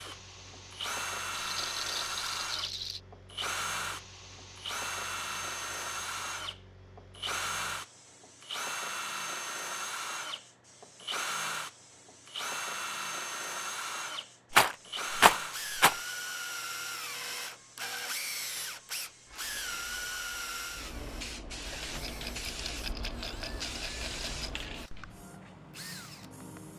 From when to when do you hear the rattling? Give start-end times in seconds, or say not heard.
1.3-3.0, 14.5-16.0, 22.1-24.5.